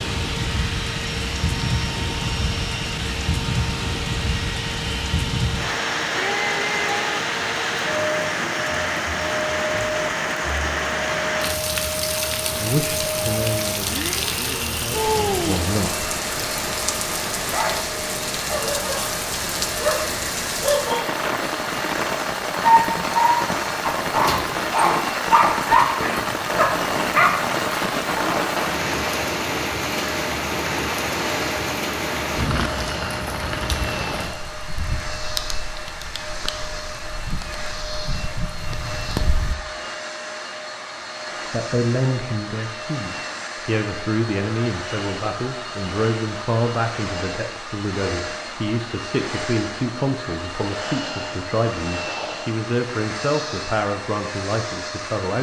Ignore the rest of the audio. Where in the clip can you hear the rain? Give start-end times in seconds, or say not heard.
0.0-39.5.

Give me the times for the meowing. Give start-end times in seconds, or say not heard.
6.2-7.2.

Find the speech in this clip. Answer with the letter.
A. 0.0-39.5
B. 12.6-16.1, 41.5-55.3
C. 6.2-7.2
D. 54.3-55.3
B.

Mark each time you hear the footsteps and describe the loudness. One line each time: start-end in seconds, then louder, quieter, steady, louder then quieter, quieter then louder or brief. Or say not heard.
not heard.